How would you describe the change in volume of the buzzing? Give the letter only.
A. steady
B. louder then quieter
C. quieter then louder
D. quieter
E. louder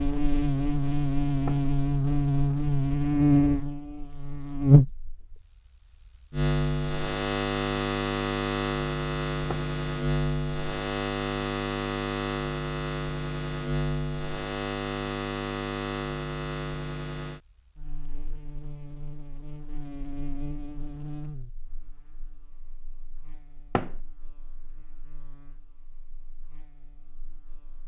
D.